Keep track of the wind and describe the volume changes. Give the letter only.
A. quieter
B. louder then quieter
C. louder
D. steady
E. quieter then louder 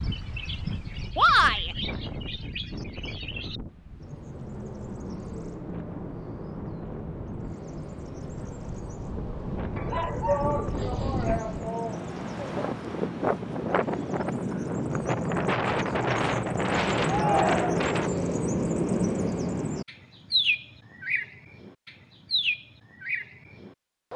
E.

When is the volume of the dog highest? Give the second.
10 s.